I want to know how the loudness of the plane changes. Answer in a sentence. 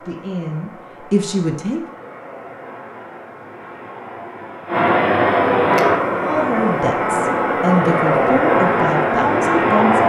The volume of the plane goes up.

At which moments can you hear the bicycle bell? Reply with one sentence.
You can't hear the bicycle bell here.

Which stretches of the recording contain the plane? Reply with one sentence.
You can hear the plane from 0.0 to 10.0 s.